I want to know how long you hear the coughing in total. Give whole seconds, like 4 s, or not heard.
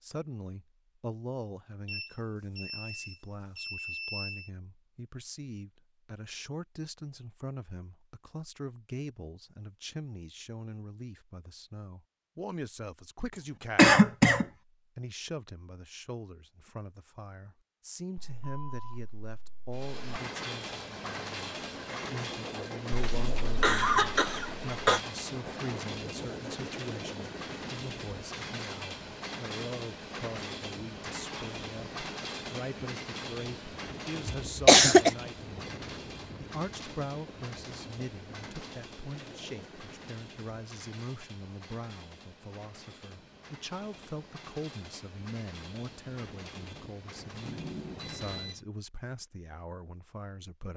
4 s.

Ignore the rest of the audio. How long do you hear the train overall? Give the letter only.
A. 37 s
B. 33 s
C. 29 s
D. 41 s
C.